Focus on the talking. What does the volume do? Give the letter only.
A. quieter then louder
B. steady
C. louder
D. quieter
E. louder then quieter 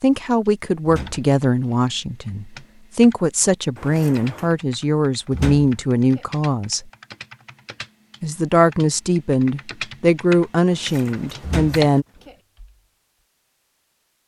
B.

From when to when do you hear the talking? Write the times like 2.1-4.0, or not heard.
0.0-6.9, 8.2-12.1.